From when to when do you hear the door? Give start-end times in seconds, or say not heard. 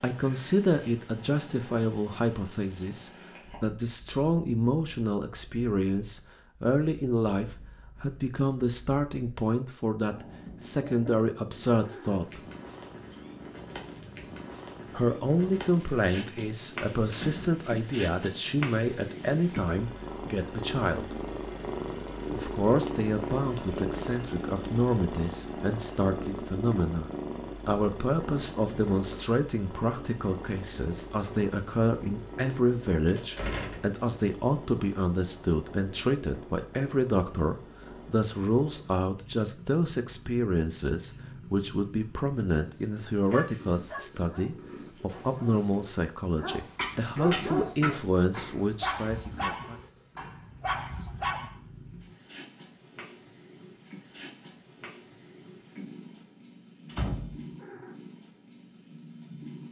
17.1-17.6, 33.0-34.0, 56.9-57.8.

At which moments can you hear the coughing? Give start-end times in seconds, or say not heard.
46.8-48.5.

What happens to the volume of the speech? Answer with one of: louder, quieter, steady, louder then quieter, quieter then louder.
steady.